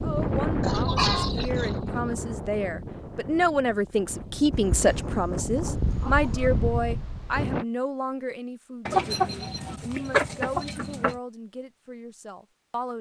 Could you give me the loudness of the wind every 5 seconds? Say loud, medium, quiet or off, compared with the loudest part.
loud, loud, off.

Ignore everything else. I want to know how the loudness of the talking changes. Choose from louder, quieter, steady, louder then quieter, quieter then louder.
louder then quieter.